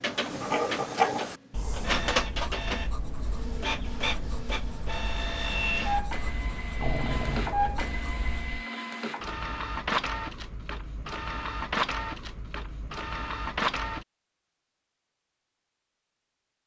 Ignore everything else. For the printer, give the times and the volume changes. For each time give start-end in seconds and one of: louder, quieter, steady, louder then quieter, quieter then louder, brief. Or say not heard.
0.0-14.1 steady.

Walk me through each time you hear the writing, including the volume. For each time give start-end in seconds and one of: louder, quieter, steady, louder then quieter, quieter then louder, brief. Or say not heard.
0.1-8.7 quieter then louder.